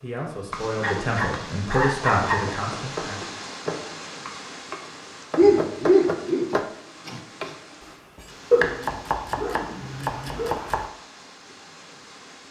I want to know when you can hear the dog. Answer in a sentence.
The dog can be heard from 0.8 to 2.4 s, from 5.3 to 6.5 s and from 8.5 to 10.6 s.